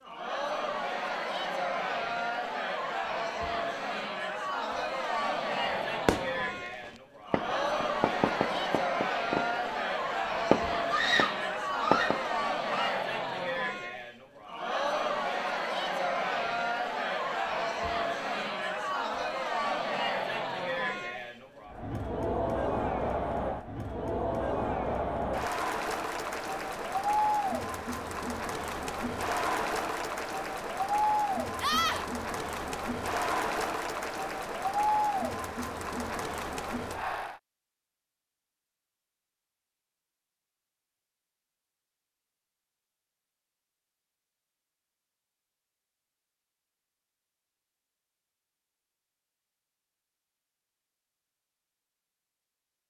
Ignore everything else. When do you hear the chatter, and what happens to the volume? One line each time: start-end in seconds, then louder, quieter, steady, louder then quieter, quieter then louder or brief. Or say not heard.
0.0-37.4 steady.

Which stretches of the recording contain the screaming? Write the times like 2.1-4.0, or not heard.
10.9-13.1, 31.6-32.0.